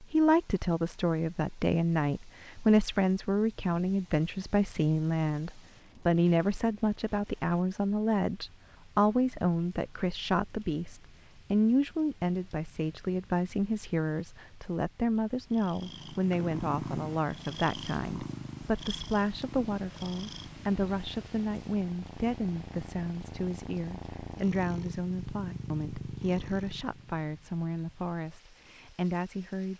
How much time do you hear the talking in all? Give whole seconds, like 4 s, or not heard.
30 s.